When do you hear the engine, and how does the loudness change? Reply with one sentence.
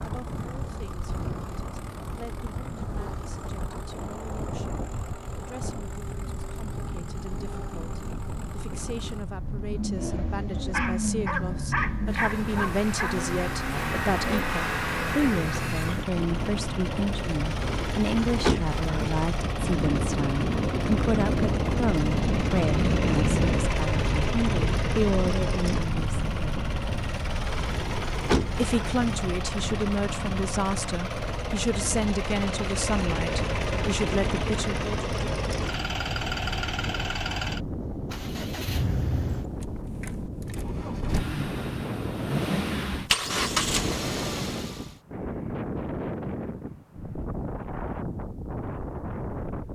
The engine can be heard from 0.0 to 45.0 s, getting louder.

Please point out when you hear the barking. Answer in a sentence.
You can hear the barking from 10.7 to 13.2 s.